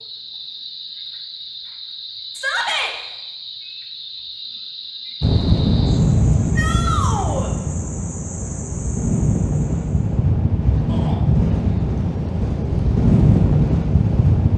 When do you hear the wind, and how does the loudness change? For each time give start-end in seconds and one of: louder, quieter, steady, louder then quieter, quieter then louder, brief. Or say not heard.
5.2-14.5 quieter then louder.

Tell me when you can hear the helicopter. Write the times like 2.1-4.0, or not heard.
not heard.